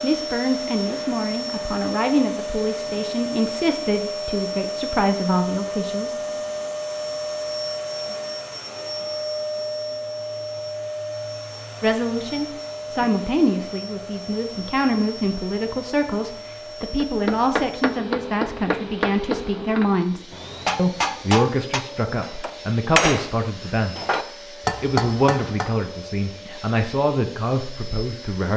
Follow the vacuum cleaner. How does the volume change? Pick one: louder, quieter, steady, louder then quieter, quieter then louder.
quieter.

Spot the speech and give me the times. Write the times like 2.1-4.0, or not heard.
0.0-6.2, 11.8-24.1, 24.8-28.5.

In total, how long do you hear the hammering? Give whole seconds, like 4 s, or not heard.
9 s.